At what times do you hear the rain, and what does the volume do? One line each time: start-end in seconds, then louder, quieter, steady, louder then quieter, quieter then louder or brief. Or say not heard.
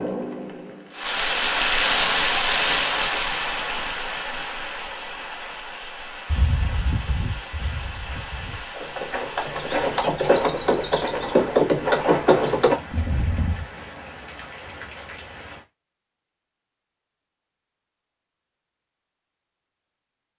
0.0-15.7 quieter.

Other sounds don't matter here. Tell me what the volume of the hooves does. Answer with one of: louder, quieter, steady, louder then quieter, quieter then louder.
louder.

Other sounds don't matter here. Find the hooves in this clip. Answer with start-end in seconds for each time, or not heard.
6.2-13.7.